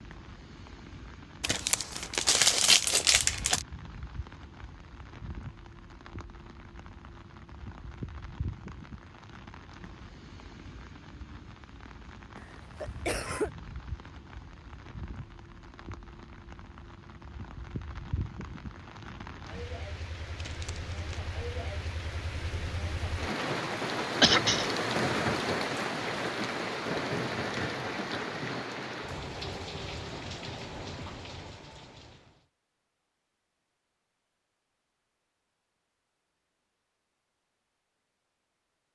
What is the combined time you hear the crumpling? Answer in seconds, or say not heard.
3 s.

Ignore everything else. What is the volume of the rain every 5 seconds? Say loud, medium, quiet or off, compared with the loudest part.
quiet, quiet, quiet, quiet, loud, loud, medium, off.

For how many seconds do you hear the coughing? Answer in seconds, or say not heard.
2 s.